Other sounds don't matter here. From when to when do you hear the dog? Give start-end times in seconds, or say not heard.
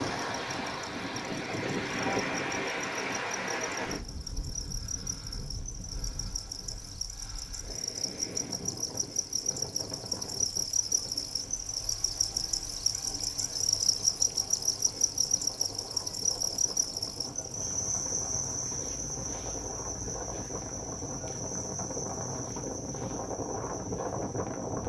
not heard.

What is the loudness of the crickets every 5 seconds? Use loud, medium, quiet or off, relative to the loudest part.
quiet, medium, loud, loud, medium.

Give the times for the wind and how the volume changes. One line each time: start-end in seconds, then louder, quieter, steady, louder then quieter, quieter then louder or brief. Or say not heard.
0.0-24.8 quieter then louder.